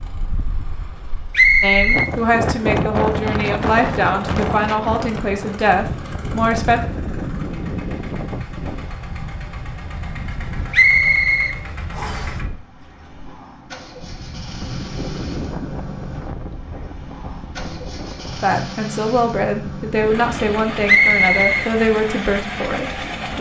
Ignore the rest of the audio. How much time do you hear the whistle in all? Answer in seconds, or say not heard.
3 s.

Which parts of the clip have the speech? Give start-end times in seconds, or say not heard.
1.6-6.8, 18.4-23.3.